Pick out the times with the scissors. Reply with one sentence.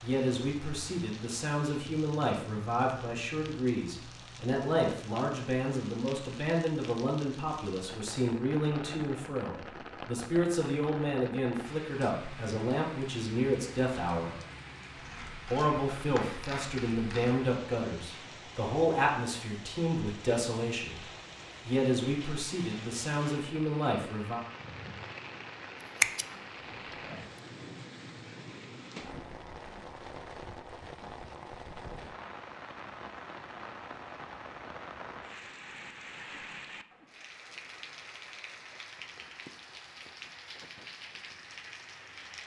The scissors can be heard from 14.9 to 17.4 s and from 25.8 to 26.2 s.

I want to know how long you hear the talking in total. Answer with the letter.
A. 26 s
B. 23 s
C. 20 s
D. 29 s
B.